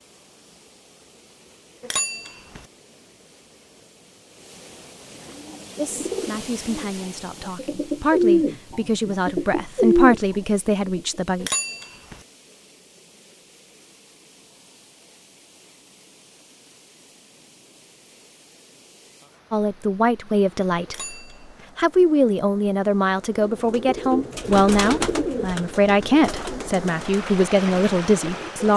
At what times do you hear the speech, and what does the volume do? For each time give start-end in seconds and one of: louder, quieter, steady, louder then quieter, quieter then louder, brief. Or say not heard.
5.8-11.5 louder
19.5-21.1 brief
21.8-28.7 steady.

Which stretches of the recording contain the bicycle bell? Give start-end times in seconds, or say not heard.
1.8-2.6, 11.4-12.2, 20.9-21.6.